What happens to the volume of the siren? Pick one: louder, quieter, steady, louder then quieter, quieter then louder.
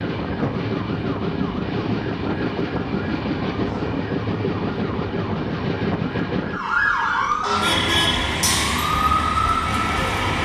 louder.